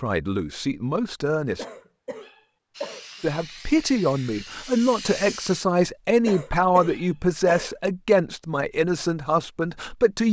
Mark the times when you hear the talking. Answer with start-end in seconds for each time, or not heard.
0.0-1.6, 3.2-10.2.